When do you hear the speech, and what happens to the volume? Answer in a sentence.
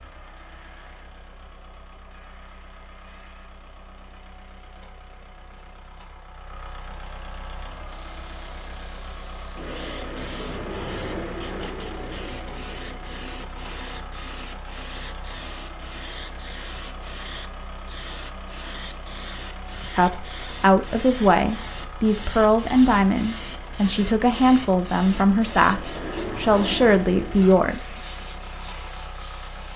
You can hear the speech from 19.9 to 28.0 s, at a steady volume.